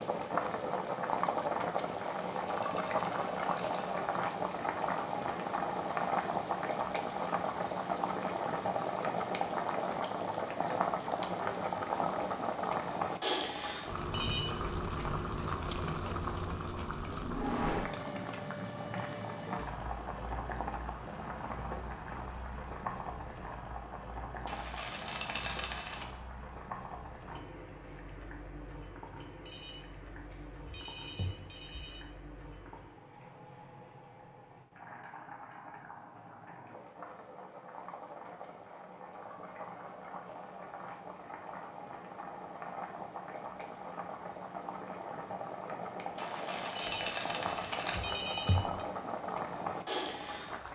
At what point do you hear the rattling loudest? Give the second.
48 s.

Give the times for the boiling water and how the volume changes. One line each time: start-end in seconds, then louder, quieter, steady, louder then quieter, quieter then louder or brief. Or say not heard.
0.0-50.7 quieter then louder.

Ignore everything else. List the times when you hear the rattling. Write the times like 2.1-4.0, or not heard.
1.9-3.9, 24.4-26.1, 46.1-48.0.